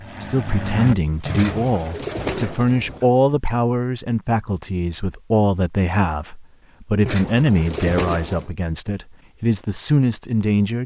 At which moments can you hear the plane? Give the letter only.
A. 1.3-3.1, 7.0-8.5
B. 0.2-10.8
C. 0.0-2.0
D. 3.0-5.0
C.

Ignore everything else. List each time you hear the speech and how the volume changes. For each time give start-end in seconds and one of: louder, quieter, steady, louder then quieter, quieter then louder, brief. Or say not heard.
0.2-10.8 steady.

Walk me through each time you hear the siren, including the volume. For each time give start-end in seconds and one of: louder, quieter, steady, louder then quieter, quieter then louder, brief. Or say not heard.
not heard.